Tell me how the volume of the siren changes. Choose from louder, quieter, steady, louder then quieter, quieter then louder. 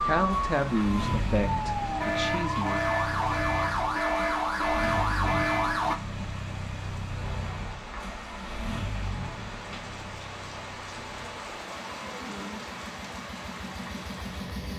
louder.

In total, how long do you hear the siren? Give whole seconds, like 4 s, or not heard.
6 s.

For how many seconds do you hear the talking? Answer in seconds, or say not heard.
3 s.